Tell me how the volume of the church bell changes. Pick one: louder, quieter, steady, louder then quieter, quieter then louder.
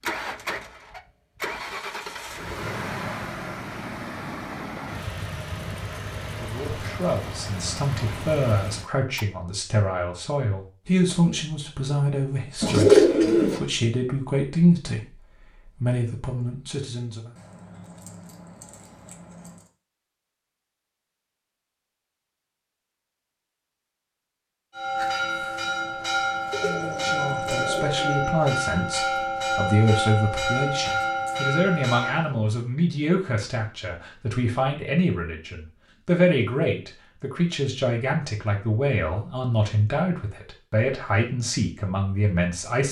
steady.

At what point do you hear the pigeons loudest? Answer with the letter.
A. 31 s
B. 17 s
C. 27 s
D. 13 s
D.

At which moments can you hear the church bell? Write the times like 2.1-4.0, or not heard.
24.7-32.3.